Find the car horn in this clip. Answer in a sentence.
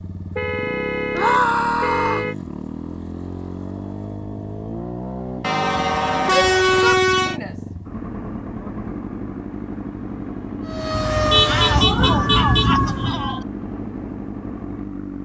The car horn can be heard from 0.3 to 2.4 s, from 5.4 to 7.4 s and from 11.3 to 12.7 s.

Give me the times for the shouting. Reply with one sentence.
You can hear the shouting from 1.1 to 2.2 s, from 6.2 to 7.5 s and from 11.4 to 13.4 s.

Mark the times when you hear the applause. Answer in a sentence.
You can't hear the applause here.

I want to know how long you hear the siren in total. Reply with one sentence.
You can hear the siren for 3 seconds altogether.